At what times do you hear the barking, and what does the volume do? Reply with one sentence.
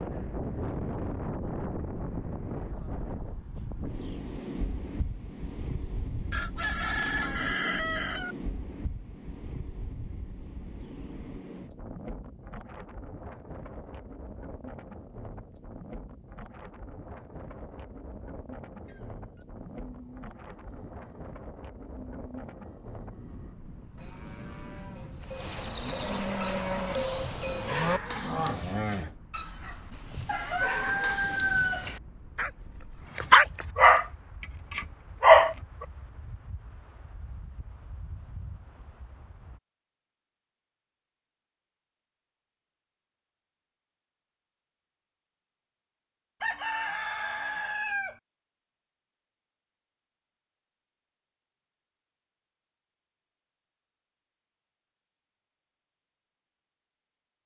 The barking can be heard from 26.4 to 35.9 s, getting quieter then louder.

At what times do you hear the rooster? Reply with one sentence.
The rooster can be heard from 6.3 to 8.3 s, from 30.2 to 32.0 s and from 46.4 to 48.1 s.